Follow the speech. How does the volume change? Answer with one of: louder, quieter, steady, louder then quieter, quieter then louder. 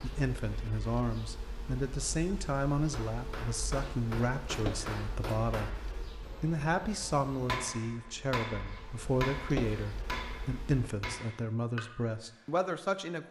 steady.